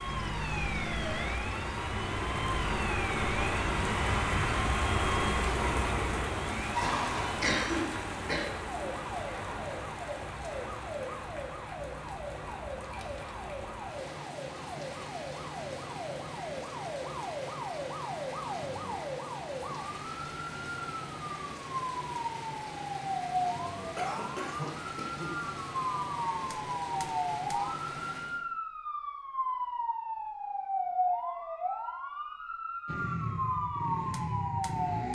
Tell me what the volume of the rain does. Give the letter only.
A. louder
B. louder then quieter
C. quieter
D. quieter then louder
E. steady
C.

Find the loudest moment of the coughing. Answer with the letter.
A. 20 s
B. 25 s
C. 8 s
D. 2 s
C.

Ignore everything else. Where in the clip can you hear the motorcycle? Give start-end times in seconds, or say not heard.
32.9-35.1.